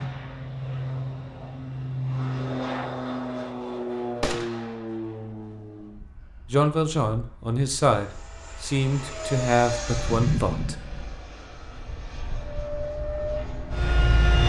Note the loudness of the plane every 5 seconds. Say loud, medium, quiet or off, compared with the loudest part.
loud, medium, loud.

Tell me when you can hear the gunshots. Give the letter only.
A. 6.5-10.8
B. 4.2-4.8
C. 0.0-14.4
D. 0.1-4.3
B.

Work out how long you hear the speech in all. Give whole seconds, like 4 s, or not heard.
4 s.